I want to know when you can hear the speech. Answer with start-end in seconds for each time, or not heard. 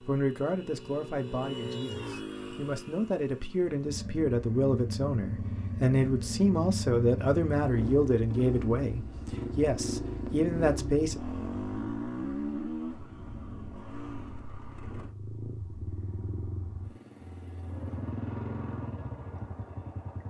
0.0-11.2.